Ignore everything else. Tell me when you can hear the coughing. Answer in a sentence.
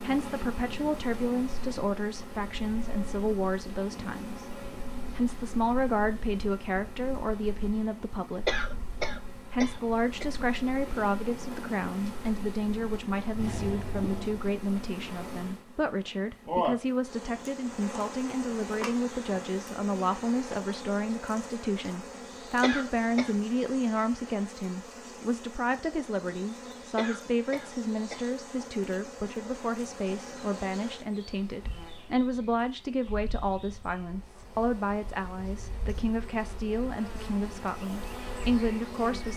You can hear the coughing from 8.4 to 10.2 s, from 22.6 to 23.4 s and from 26.9 to 28.3 s.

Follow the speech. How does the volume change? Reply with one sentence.
The loudness of the speech stays about the same.